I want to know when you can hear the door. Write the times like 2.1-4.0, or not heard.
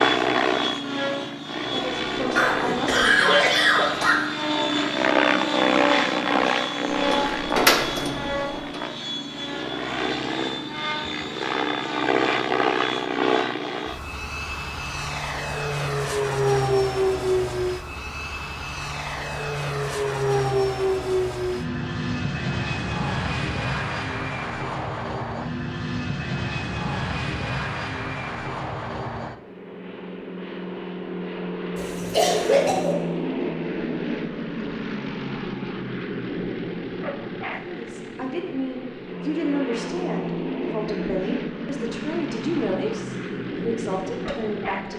7.0-8.8.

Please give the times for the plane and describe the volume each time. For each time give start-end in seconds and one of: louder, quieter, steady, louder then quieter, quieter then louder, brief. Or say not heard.
0.0-44.9 quieter.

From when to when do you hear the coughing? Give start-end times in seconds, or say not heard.
2.4-4.2, 31.8-33.0.